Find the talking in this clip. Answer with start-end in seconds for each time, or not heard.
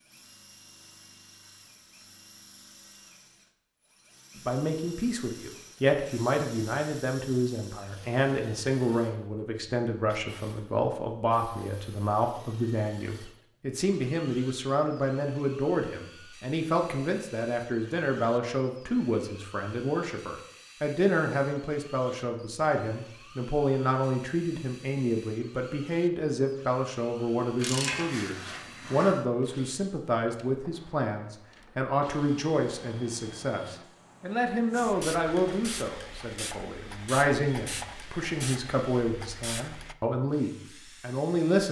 4.3-41.6.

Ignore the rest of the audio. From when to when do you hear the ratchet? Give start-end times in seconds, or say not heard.
27.6-29.1.